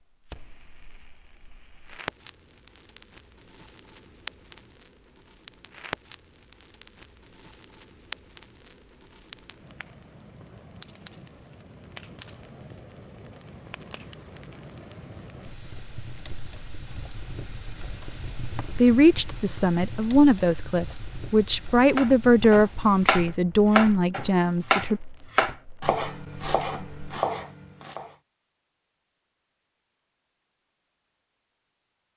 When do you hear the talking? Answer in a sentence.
You can hear the talking from 18.8 to 25.0 s.